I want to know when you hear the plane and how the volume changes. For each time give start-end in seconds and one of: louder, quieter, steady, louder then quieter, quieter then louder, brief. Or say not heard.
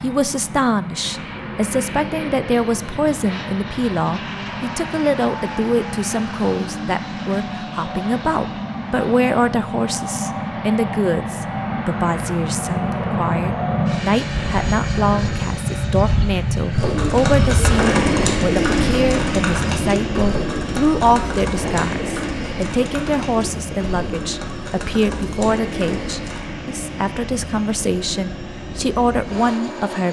0.0-30.0 louder then quieter.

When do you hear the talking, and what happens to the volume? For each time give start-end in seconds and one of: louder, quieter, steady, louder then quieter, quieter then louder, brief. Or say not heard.
0.0-30.0 steady.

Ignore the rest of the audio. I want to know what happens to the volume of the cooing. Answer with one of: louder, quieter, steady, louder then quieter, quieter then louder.
quieter.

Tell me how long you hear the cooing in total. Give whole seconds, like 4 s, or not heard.
10 s.